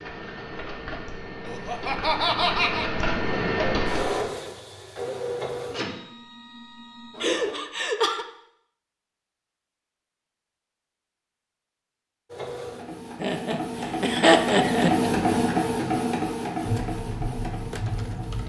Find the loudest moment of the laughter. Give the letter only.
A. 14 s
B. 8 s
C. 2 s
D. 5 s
A.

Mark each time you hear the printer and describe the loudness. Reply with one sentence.
You can hear the printer from 0.0 to 7.5 s, getting louder then quieter; and from 12.2 to 18.4 s, getting louder then quieter.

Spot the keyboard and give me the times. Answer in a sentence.
The keyboard can be heard from 16.6 to 18.4 s.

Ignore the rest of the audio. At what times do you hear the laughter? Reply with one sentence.
You can hear the laughter from 1.4 to 2.9 s, from 7.2 to 8.2 s and from 13.2 to 15.1 s.